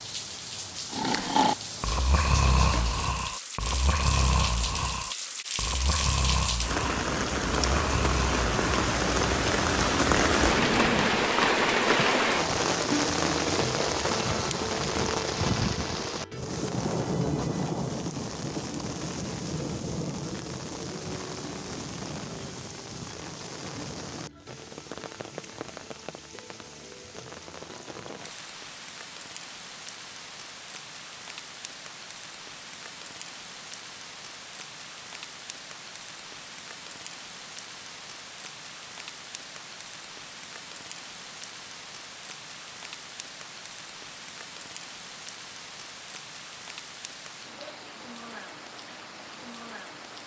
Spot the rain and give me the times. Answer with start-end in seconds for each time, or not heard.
0.0-50.2.